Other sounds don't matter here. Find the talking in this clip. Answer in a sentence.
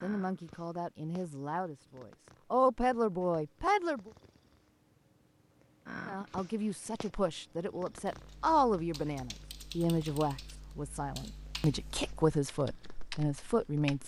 You can hear the talking from 0.0 to 4.1 s and from 6.0 to 14.0 s.